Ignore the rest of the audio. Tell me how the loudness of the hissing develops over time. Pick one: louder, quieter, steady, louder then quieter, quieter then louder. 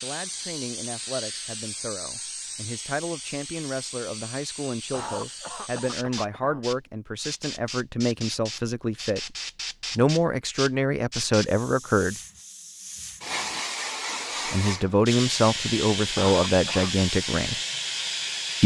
louder.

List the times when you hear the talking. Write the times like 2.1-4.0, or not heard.
0.0-9.3, 9.9-12.2, 14.5-17.6.